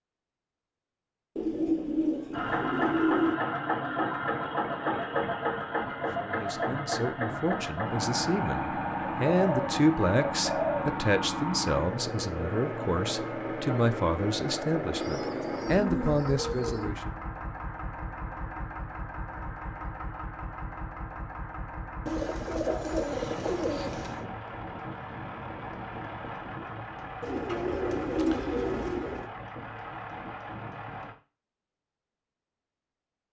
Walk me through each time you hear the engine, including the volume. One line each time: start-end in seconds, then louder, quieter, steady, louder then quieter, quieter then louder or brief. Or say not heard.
2.3-31.1 quieter.